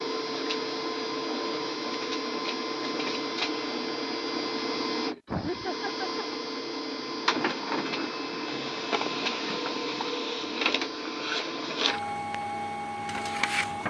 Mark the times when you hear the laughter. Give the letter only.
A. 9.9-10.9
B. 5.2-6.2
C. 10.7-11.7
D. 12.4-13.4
B.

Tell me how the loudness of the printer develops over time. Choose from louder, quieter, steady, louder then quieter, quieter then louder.
steady.